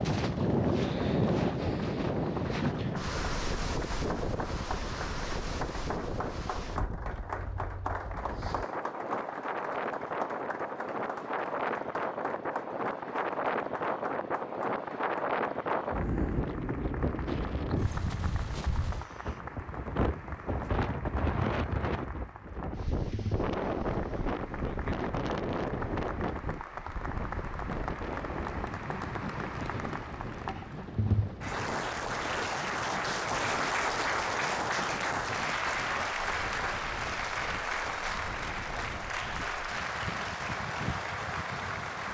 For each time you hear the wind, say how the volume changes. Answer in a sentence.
The wind can be heard from 0.0 to 42.0 s, getting quieter.